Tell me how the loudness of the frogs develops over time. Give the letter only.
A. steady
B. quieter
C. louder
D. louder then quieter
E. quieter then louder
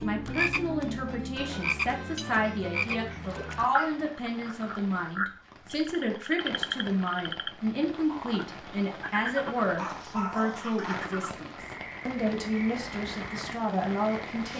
B.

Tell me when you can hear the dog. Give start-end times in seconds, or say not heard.
2.1-4.0, 9.8-11.1.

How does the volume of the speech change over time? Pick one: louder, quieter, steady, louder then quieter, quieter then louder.
steady.